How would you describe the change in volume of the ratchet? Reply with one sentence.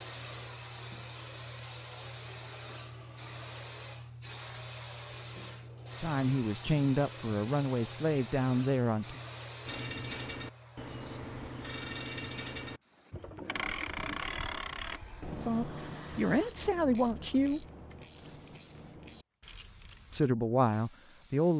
The volume of the ratchet goes down.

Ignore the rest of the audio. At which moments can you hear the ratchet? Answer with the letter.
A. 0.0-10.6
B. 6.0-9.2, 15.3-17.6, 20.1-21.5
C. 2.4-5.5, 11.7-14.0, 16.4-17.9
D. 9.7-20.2
D.